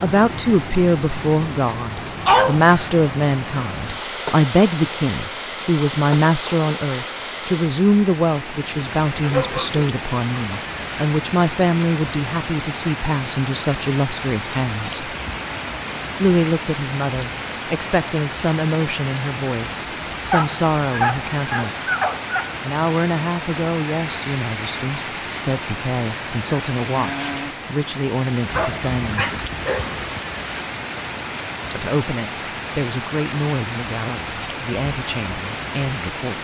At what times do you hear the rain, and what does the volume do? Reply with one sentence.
You can hear the rain from 0.0 to 36.3 s, at a steady volume.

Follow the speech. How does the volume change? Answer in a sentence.
The loudness of the speech goes down.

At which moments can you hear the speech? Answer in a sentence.
The speech can be heard from 0.0 to 15.2 s, from 16.1 to 21.9 s, from 22.6 to 29.3 s and from 31.8 to 36.3 s.